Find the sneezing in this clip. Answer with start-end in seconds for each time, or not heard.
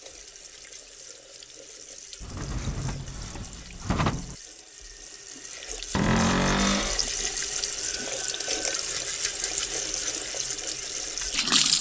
not heard.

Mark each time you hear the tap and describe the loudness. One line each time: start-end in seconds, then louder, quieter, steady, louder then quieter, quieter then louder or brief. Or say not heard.
0.0-11.7 louder.